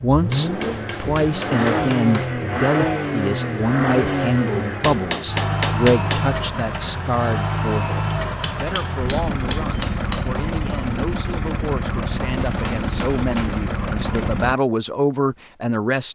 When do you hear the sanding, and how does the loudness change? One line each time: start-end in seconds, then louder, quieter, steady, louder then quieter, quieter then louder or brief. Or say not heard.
not heard.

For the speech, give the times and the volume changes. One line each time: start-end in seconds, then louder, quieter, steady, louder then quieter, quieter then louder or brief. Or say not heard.
0.0-16.1 quieter then louder.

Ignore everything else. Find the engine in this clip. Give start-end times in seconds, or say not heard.
0.0-14.6.